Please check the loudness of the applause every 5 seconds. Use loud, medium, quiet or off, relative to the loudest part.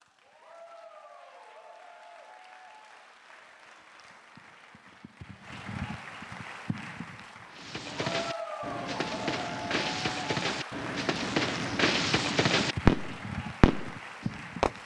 quiet, loud, loud.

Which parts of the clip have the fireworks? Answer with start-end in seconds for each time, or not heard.
7.5-14.7.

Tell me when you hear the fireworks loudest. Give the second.
13 s.